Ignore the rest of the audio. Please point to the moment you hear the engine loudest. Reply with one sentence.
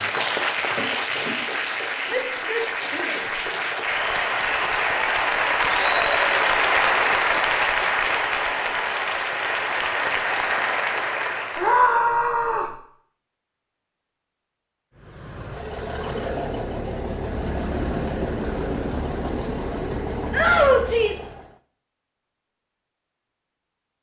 The loudest moment of the engine is at 18 seconds.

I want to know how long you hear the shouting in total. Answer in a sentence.
You can hear the shouting for 3 seconds altogether.